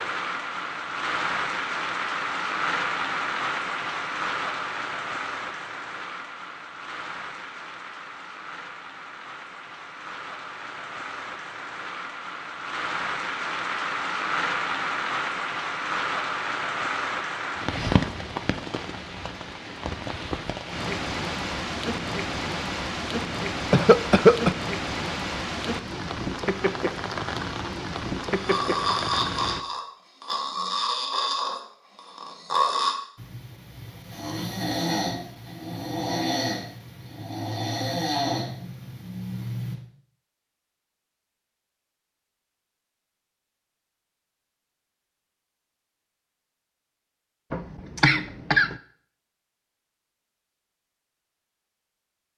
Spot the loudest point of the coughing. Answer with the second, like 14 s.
24 s.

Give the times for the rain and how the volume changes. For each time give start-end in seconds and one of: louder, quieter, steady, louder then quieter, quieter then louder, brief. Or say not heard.
0.0-29.6 quieter then louder.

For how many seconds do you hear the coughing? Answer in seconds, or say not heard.
2 s.